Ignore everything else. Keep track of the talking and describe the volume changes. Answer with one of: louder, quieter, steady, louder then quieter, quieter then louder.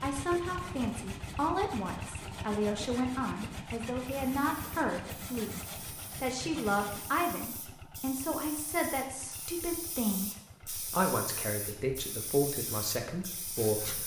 steady.